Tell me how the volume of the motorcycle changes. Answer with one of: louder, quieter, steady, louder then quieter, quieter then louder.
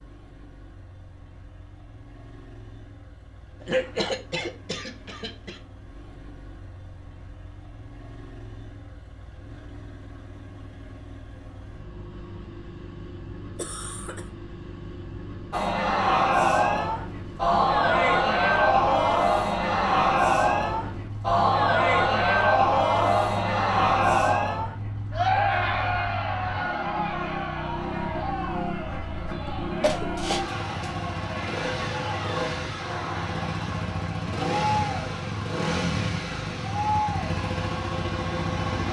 louder.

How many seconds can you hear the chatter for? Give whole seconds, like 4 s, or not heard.
23 s.